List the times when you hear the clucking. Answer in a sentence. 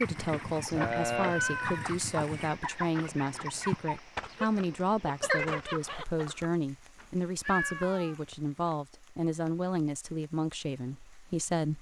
You can hear the clucking from 0.0 to 6.5 s.